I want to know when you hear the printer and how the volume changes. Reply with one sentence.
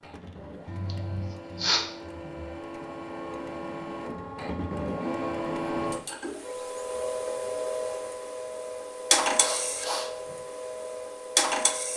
You can hear the printer from 0.0 to 11.9 s, getting louder.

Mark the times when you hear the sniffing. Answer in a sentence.
The sniffing can be heard from 0.7 to 1.9 s and from 9.4 to 10.3 s.